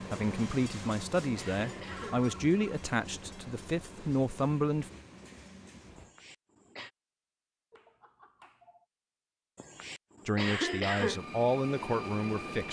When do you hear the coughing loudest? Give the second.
11 s.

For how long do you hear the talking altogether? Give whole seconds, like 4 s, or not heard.
7 s.